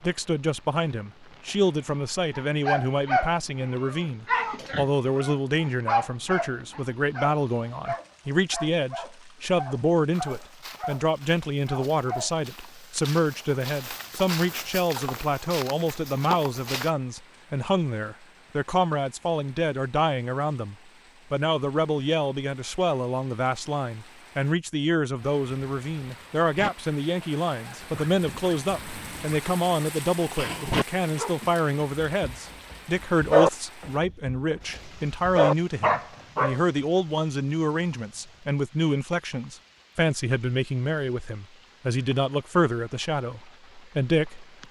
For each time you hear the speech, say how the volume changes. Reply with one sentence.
The speech can be heard from 0.0 to 44.5 s, at a steady volume.